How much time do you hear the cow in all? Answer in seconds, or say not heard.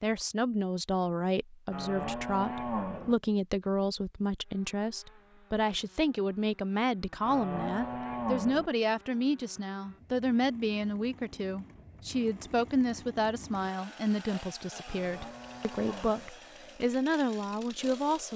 4 s.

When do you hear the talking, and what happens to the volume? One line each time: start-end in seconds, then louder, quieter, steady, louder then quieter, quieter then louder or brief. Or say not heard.
0.0-18.3 steady.